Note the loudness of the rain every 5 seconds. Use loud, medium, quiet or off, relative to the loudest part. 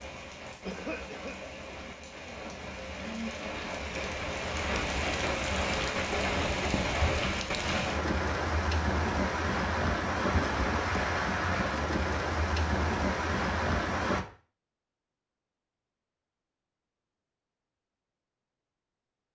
medium, loud, loud, off.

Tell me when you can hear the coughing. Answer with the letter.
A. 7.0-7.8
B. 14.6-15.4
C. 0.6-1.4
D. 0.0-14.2
C.